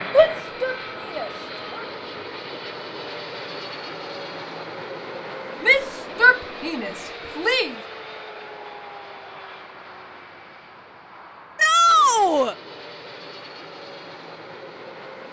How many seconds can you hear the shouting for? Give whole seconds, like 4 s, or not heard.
4 s.